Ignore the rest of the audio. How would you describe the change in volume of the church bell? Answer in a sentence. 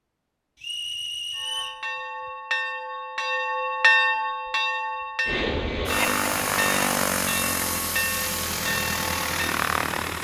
The volume of the church bell goes up, then down.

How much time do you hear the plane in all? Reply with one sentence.
The plane can be heard for 5 seconds in total.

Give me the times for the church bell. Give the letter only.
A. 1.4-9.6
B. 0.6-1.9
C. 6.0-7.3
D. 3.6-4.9
A.